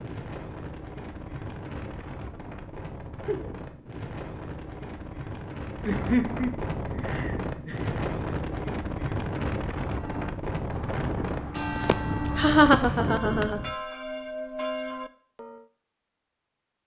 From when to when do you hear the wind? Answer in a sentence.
You can hear the wind from 0.0 to 13.8 s.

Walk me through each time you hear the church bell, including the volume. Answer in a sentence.
The church bell can be heard from 9.8 to 15.7 s, getting louder.